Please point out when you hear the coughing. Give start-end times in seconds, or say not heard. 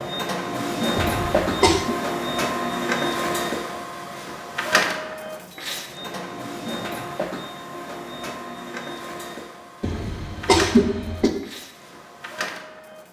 0.9-1.9, 9.8-11.3.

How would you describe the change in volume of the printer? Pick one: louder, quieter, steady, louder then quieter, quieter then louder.
quieter.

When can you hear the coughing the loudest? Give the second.
11 s.